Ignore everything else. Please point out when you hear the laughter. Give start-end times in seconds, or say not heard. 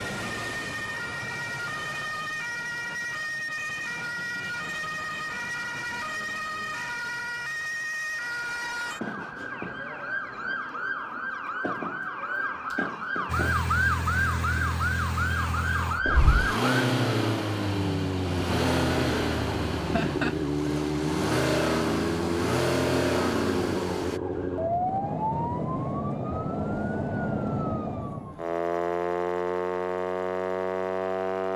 19.8-20.4.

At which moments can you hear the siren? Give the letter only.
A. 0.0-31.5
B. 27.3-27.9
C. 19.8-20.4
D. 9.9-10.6
A.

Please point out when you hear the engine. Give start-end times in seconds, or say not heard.
13.2-24.2.